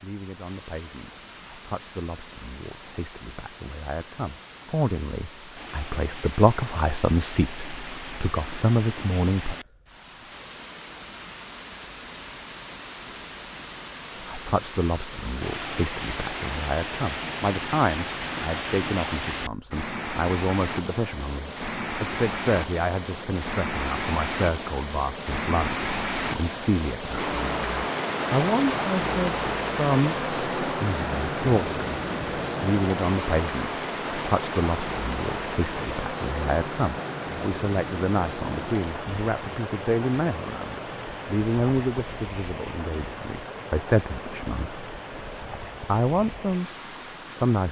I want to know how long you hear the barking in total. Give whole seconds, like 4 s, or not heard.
not heard.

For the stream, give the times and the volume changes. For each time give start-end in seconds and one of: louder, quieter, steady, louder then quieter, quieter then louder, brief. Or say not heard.
0.0-47.6 louder then quieter.